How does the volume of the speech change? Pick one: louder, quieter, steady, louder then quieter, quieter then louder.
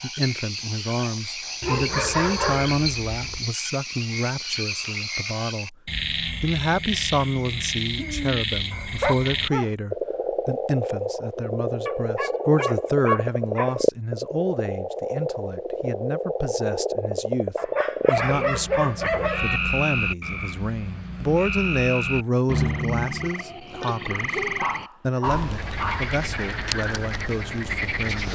steady.